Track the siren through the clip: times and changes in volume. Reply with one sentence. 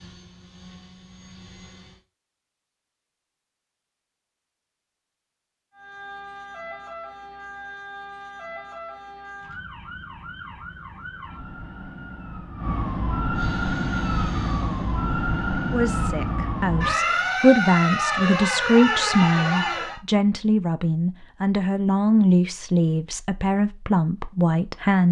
The siren can be heard from 5.7 to 20.0 s, getting louder.